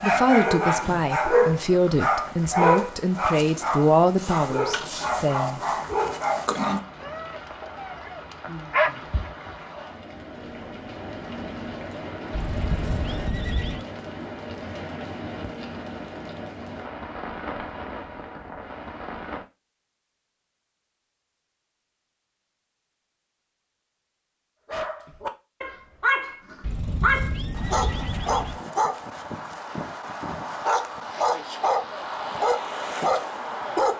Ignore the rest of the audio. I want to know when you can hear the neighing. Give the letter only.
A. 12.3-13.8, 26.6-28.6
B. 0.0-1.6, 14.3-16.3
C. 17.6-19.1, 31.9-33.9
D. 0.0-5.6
A.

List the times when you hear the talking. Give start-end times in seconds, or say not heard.
0.0-5.6.